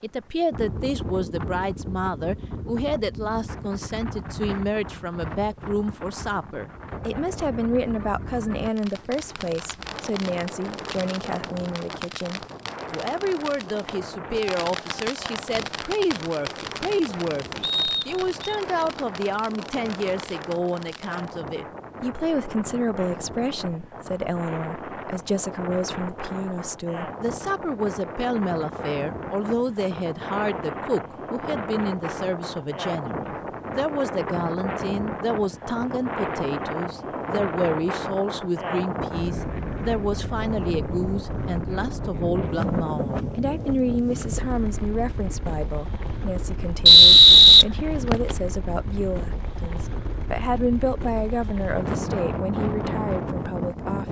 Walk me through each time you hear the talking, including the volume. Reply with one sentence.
You can hear the talking from 0.0 to 54.0 s, at a steady volume.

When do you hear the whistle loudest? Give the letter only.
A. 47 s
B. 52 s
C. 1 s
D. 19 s
A.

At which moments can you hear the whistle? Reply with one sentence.
The whistle can be heard from 17.6 to 18.6 s and from 46.9 to 48.4 s.